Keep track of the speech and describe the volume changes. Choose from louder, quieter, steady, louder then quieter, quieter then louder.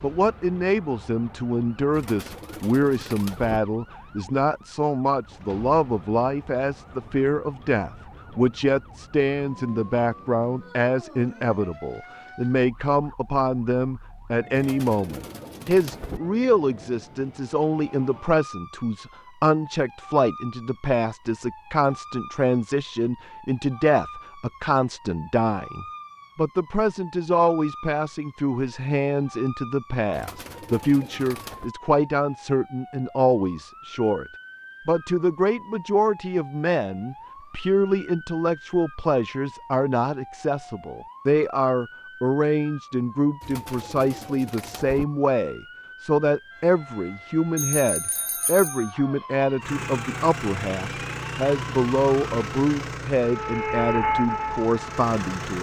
steady.